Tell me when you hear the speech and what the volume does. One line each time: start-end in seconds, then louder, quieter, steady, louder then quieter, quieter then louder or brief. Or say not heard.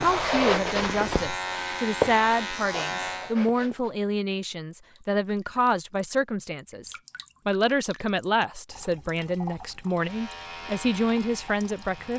0.0-12.1 steady.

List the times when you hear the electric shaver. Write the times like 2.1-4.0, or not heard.
0.0-3.4, 9.9-12.1.